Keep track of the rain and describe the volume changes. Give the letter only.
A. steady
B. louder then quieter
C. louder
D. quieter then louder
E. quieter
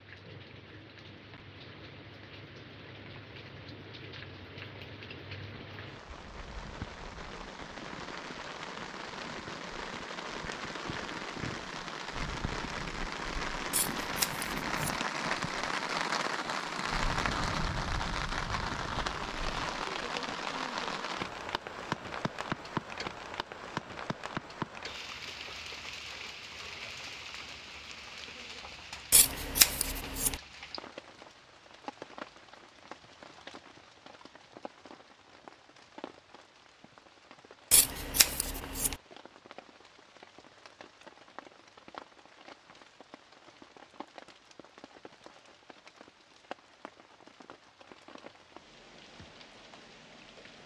B.